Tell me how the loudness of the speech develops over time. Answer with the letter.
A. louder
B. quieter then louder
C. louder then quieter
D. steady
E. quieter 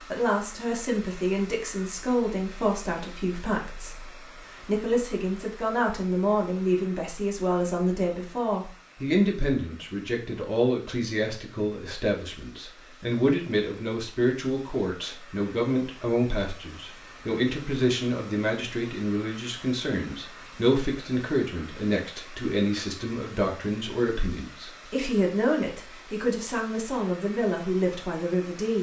D.